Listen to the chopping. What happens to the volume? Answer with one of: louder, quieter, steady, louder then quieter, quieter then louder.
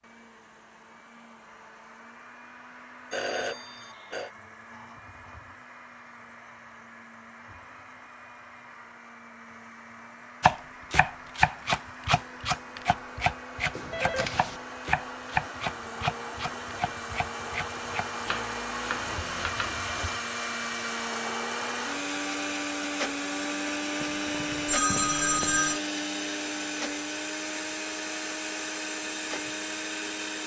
quieter.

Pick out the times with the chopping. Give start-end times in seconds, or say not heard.
10.4-19.8.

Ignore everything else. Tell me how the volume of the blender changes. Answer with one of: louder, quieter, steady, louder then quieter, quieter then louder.
louder.